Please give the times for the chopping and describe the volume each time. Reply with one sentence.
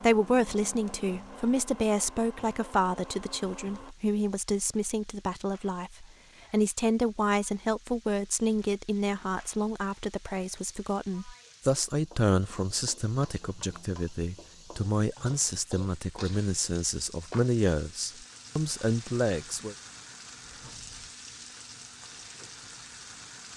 The chopping can't be heard in this clip.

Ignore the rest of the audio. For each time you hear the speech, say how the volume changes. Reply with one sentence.
The speech can be heard from 0.0 to 19.8 s, at a steady volume.